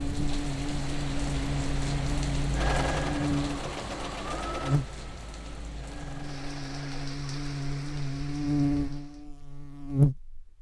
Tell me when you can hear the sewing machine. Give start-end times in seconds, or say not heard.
2.5-7.1.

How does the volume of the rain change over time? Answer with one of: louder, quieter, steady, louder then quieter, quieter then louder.
quieter.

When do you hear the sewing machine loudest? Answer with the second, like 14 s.
3 s.